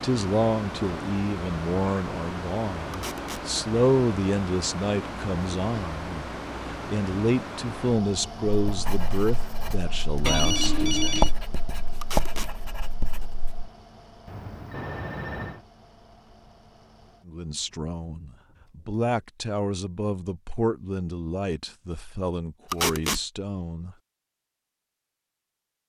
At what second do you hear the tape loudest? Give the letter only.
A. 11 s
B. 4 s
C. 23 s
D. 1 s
C.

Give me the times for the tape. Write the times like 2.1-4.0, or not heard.
2.9-3.5, 12.0-12.5, 22.7-23.2.